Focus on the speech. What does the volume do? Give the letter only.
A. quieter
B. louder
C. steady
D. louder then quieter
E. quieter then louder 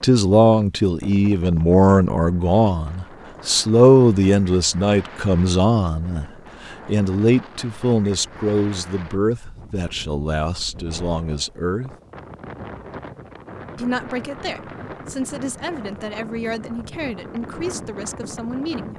A.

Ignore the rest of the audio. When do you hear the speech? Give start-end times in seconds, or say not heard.
0.0-11.9, 13.8-18.9.